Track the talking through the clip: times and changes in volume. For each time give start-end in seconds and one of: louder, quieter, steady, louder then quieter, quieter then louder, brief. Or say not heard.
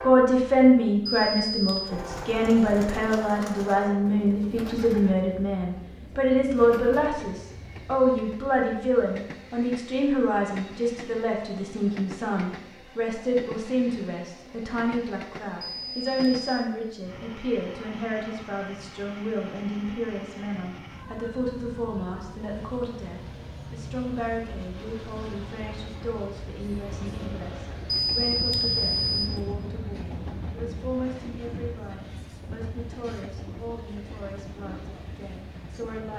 0.0-36.1 quieter.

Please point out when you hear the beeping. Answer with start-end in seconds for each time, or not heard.
1.1-1.9, 15.6-16.6, 27.9-29.4.